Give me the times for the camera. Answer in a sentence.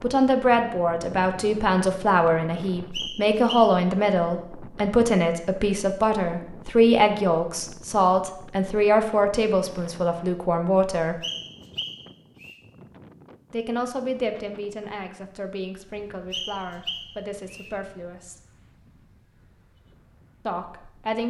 The camera can't be heard in this clip.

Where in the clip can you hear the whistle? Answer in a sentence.
You can hear the whistle from 2.9 to 3.7 s, from 11.2 to 12.6 s and from 16.3 to 17.7 s.